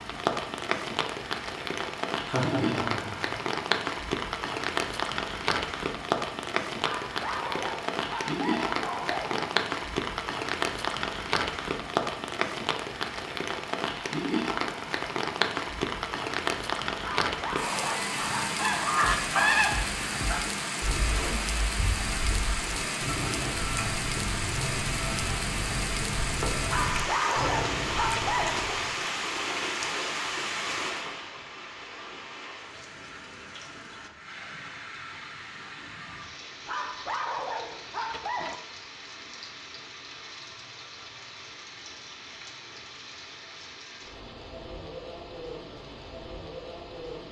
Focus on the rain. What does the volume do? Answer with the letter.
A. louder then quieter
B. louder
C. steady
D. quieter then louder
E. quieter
E.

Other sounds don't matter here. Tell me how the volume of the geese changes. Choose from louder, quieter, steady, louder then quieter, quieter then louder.
quieter.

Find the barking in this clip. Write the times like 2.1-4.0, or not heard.
6.8-9.5, 17.0-18.9, 26.6-28.8, 36.6-38.6.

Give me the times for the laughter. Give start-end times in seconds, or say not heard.
2.2-3.4.